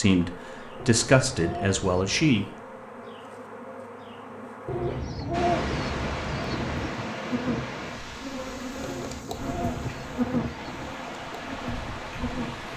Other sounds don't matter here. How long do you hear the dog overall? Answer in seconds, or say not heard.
not heard.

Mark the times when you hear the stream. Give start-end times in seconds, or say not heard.
5.3-12.7.